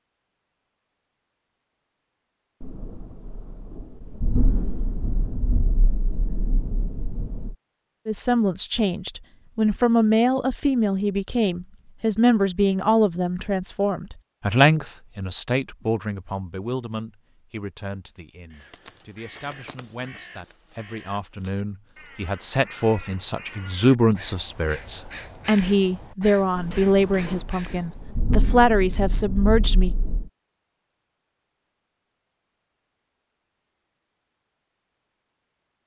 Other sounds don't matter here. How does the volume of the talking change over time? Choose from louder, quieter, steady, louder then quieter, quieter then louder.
quieter then louder.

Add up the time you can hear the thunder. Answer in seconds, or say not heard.
9 s.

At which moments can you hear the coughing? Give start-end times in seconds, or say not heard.
not heard.